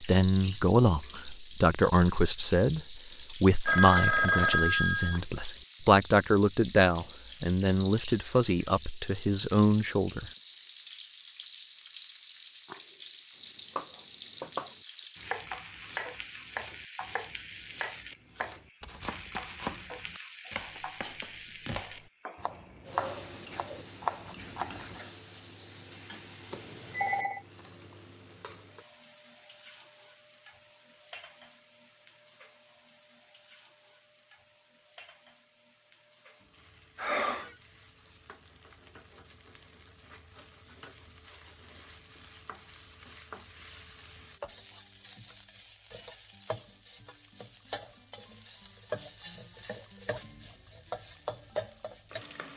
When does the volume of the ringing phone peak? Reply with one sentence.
The volume of the ringing phone peaks at 4 seconds.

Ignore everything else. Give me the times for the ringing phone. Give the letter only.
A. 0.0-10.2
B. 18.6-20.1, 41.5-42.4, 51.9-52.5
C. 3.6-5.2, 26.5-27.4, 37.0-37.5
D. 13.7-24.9
C.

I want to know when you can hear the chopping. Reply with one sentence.
The chopping can be heard from 13.7 to 24.9 s.